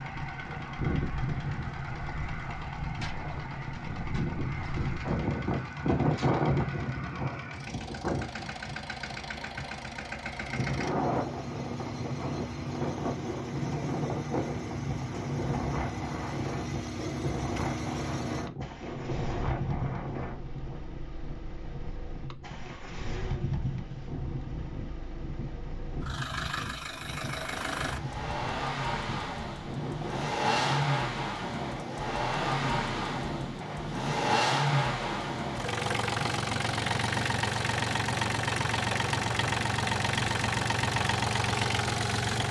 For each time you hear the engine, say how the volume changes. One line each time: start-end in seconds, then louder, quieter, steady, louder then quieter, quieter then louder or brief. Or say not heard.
0.0-42.4 louder.